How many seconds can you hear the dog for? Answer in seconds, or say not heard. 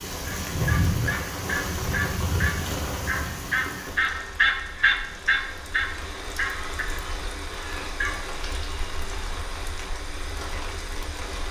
not heard.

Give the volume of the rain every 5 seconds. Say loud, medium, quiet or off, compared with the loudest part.
loud, medium, medium.